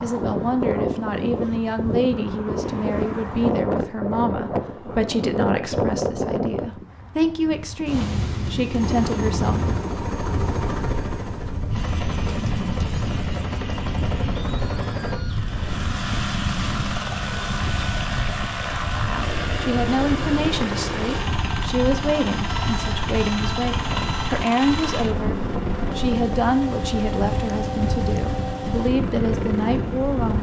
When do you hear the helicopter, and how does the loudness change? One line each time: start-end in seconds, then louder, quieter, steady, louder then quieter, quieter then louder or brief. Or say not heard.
8.8-30.3 steady.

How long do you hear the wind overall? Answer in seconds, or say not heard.
30 s.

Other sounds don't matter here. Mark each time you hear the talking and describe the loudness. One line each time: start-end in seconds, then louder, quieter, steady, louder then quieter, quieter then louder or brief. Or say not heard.
0.0-9.8 steady
19.1-30.3 steady.